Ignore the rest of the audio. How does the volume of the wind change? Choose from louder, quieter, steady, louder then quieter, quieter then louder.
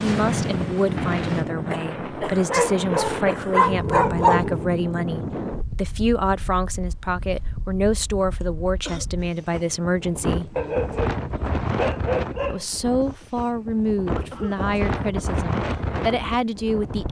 quieter then louder.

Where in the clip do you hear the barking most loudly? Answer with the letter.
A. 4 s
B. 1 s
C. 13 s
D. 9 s
A.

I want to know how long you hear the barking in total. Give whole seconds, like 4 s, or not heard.
4 s.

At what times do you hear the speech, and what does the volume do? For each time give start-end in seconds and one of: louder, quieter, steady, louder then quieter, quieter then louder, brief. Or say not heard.
0.0-10.6 steady
12.5-17.0 quieter then louder.